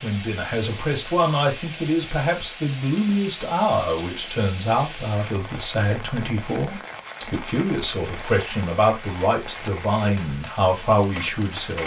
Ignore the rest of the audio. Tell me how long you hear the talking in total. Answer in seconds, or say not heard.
12 s.